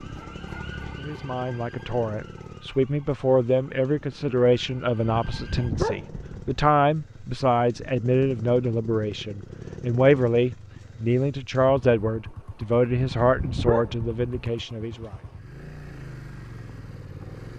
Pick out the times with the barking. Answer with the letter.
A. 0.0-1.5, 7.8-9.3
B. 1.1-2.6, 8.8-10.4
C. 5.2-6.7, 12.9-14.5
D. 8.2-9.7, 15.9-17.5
C.